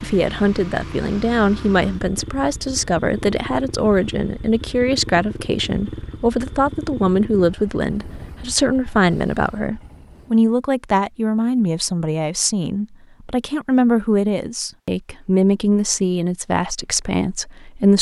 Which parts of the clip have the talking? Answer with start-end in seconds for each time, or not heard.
0.0-17.9.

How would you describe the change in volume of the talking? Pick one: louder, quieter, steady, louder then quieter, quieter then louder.
steady.